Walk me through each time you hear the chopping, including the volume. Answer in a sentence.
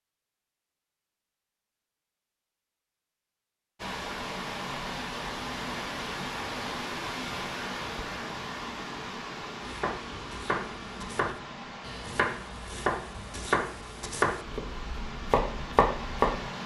The chopping can be heard from 9.6 to 16.5 s, getting louder.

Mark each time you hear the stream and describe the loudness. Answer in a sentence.
The stream can be heard from 3.8 to 16.6 s, getting quieter.